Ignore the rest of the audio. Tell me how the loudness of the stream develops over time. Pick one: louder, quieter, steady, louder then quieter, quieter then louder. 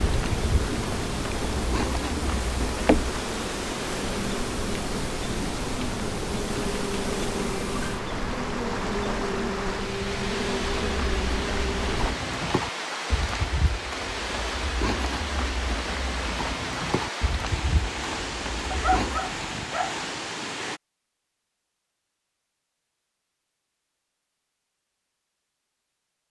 steady.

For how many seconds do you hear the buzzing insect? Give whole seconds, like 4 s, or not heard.
12 s.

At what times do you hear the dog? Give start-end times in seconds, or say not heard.
18.7-19.9.